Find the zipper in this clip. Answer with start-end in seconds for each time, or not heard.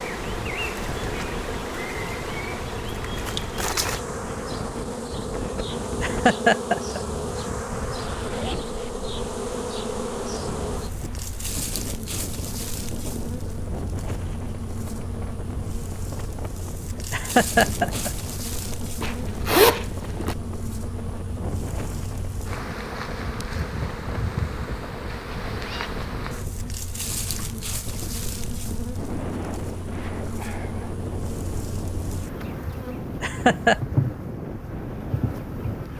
8.0-8.9, 19.0-20.4, 25.5-26.0.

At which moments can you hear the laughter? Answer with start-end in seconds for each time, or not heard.
6.0-7.0, 17.1-18.1, 33.2-33.8.